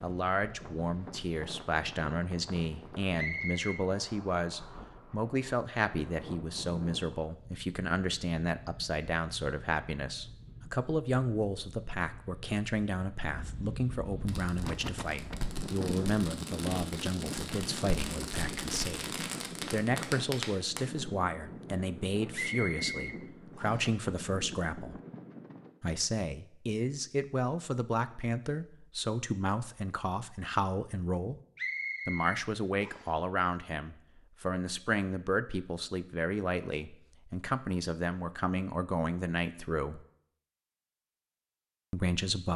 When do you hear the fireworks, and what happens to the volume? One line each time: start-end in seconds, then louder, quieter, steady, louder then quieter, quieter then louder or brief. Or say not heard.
14.2-20.8 louder.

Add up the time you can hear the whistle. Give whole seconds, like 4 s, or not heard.
4 s.